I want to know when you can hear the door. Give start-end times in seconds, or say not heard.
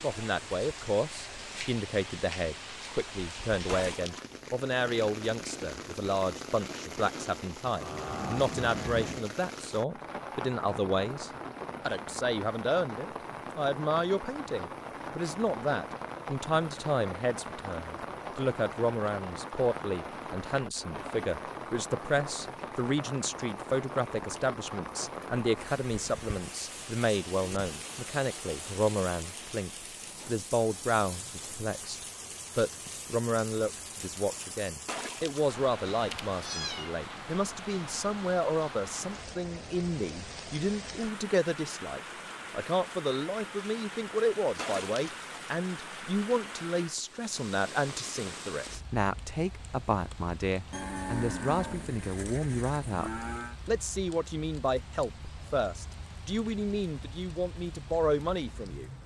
not heard.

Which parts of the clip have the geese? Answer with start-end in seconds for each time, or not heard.
not heard.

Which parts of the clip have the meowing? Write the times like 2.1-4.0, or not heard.
3.6-4.3, 34.9-37.0, 44.5-45.5.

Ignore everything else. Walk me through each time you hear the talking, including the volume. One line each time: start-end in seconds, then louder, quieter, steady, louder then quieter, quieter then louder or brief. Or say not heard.
0.0-58.9 steady.